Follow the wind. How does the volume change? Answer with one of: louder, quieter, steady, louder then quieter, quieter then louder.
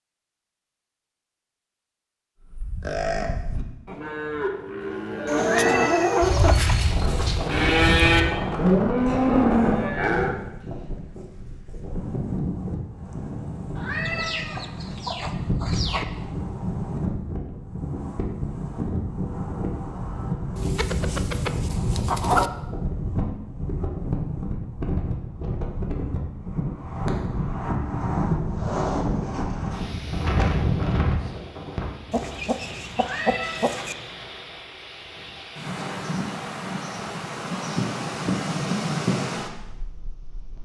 steady.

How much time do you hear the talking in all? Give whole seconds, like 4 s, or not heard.
not heard.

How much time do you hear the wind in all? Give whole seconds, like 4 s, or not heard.
34 s.